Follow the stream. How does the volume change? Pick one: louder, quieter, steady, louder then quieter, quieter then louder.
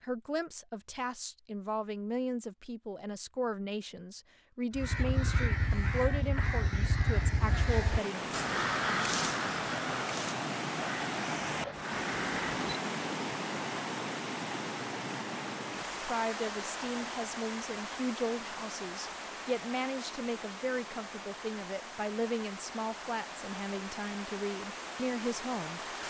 quieter.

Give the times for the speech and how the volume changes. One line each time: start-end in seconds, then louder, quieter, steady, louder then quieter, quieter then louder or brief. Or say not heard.
0.0-8.4 steady
16.0-25.8 steady.